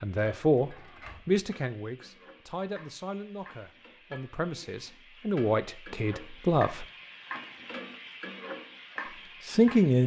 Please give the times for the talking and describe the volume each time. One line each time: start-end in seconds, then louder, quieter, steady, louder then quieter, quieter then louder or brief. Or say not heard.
0.0-6.8 quieter then louder
9.4-10.0 brief.